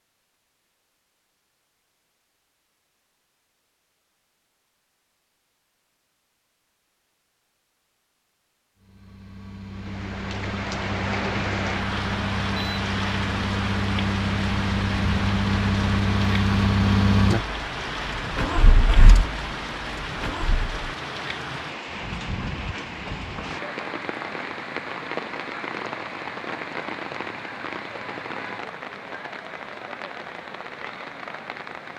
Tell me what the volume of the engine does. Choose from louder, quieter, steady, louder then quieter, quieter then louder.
louder then quieter.